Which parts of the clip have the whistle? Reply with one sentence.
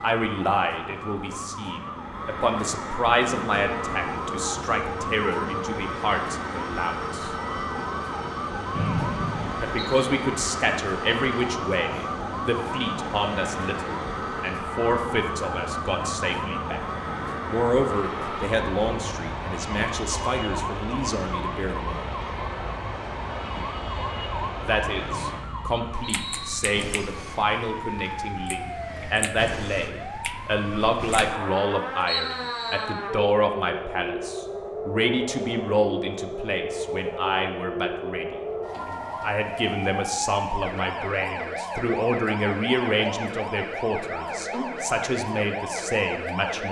The whistle can be heard from 8.7 to 9.9 s, from 25.0 to 26.6 s and from 32.0 to 32.9 s.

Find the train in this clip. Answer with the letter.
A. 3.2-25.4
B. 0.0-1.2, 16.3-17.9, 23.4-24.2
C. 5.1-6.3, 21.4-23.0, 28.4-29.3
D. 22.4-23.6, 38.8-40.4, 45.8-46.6
A.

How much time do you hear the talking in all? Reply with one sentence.
You can hear the talking for 41 seconds altogether.